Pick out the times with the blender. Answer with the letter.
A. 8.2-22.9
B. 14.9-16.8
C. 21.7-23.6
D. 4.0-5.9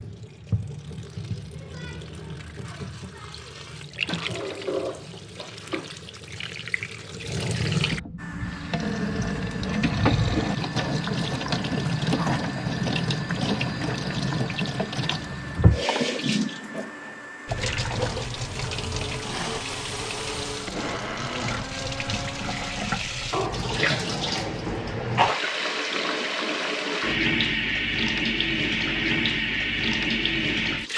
A.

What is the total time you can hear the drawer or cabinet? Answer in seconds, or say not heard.
2 s.